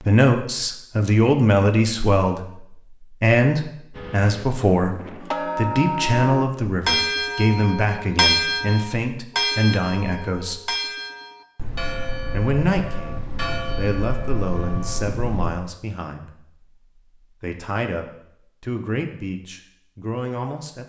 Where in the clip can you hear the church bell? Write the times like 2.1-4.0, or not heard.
3.9-15.2.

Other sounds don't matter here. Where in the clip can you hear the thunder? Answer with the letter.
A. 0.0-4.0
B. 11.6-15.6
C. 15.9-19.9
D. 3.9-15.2
B.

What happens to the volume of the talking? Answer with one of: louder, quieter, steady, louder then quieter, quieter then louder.
quieter.